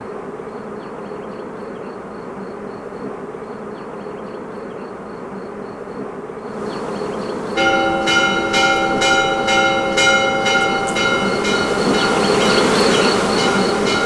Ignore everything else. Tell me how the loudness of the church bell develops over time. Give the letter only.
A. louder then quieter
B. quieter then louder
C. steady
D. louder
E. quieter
E.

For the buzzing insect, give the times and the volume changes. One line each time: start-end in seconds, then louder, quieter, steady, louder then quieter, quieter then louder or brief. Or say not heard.
0.0-14.0 louder.